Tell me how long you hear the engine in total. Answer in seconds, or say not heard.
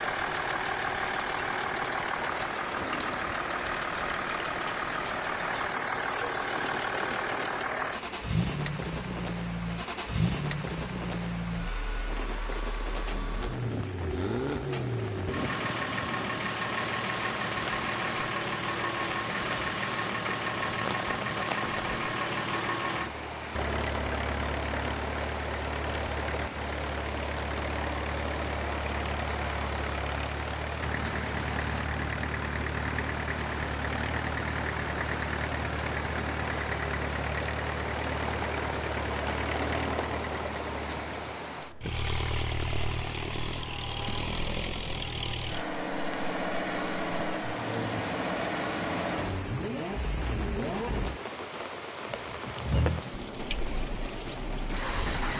55 s.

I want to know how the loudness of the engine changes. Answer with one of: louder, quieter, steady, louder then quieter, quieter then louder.
steady.